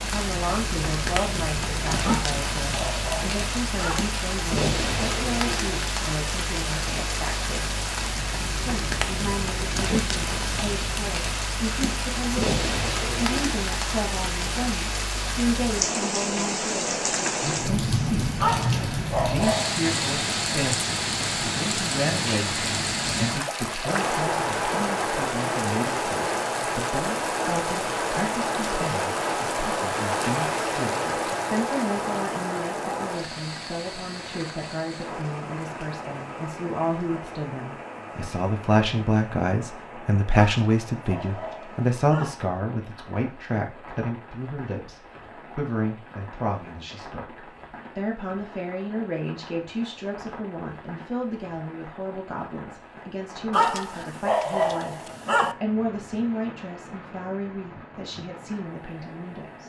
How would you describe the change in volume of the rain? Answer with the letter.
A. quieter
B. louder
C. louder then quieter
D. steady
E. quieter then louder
A.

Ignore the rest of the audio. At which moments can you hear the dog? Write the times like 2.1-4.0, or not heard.
2.0-4.0, 18.4-19.8, 40.4-42.4, 53.5-55.5.